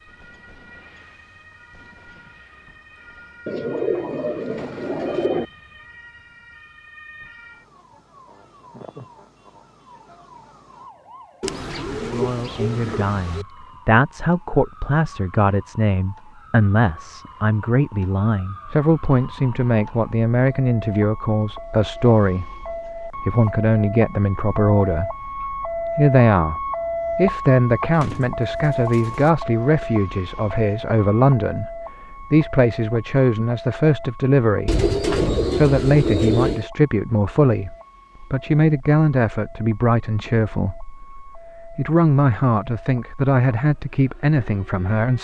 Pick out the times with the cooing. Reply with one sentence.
The cooing can be heard from 3.5 to 5.5 s, from 11.4 to 13.4 s, from 27.9 to 29.3 s and from 34.6 to 36.6 s.